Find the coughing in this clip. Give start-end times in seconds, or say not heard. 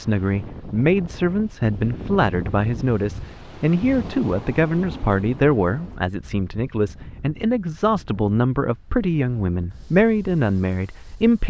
not heard.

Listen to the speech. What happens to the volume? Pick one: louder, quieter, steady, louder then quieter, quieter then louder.
steady.